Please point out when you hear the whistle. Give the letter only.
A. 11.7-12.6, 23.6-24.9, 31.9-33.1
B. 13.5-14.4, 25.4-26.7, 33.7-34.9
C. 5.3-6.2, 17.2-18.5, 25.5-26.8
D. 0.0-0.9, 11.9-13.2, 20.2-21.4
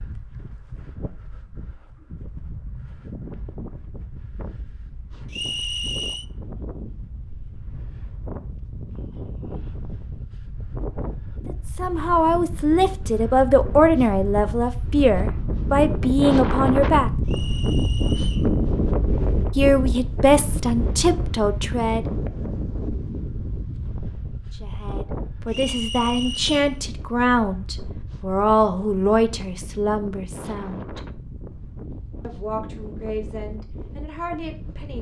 C.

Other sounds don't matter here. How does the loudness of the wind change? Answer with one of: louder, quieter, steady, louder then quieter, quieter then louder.
louder then quieter.